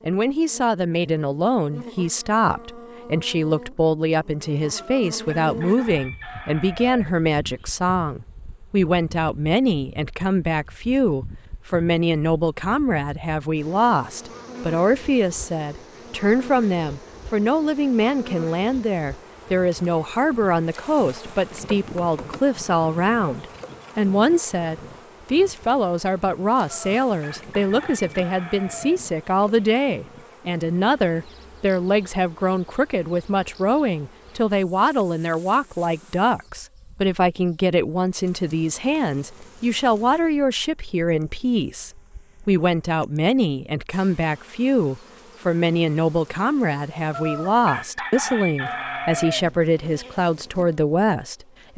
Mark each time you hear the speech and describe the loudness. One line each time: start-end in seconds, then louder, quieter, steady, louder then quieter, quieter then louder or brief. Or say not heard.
0.1-51.7 steady.